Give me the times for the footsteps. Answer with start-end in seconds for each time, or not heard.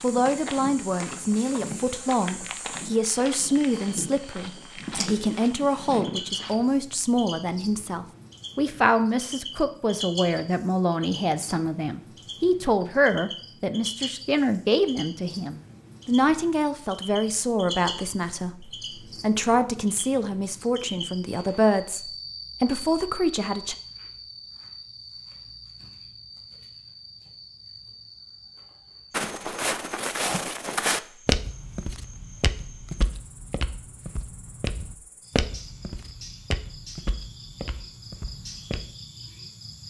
0.0-6.7, 29.1-38.8.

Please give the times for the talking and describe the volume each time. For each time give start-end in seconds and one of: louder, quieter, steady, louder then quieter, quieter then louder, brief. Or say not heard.
0.0-23.8 steady.